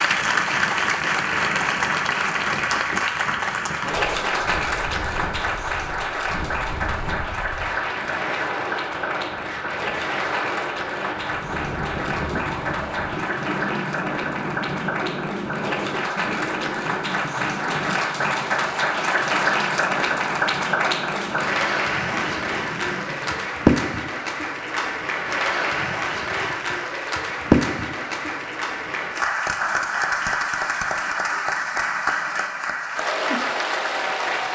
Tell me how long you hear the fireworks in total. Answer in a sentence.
The fireworks can't be heard in this clip.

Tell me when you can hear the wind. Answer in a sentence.
You can hear the wind from 0.0 to 23.5 s.